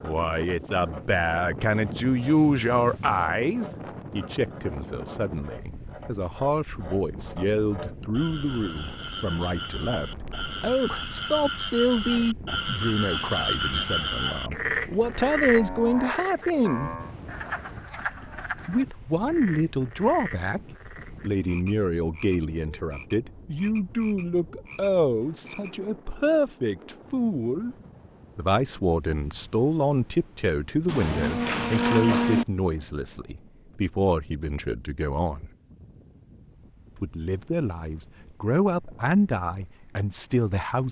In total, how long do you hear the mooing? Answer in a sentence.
You can hear the mooing for 5 seconds altogether.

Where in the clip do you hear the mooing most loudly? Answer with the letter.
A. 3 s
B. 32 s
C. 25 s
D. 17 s
B.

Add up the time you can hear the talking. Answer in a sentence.
The talking can be heard for 37 seconds in total.